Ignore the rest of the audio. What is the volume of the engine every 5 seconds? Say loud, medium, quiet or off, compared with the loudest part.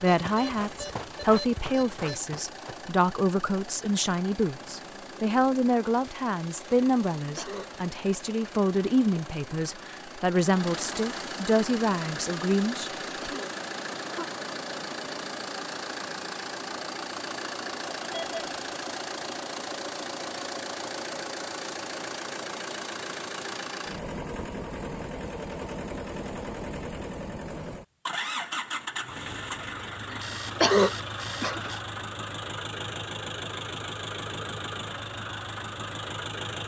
medium, medium, loud, loud, loud, loud, loud, loud.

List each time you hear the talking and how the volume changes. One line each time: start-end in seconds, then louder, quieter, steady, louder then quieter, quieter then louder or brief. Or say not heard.
0.0-13.4 steady.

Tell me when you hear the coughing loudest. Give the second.
31 s.